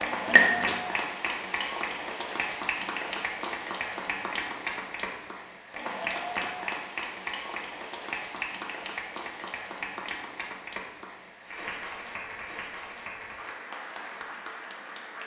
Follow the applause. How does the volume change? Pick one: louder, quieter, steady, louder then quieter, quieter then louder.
quieter.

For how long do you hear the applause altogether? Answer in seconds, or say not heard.
15 s.